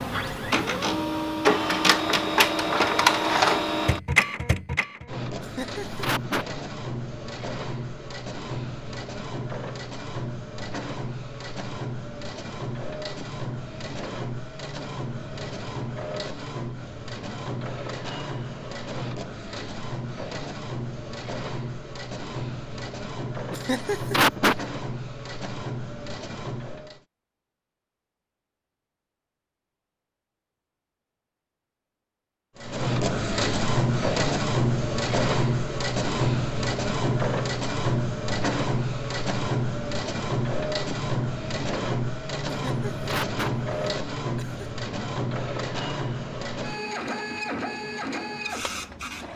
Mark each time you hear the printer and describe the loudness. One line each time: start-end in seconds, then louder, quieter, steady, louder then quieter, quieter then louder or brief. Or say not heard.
0.0-27.0 quieter
32.5-49.3 quieter.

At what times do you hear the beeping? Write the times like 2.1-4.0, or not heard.
not heard.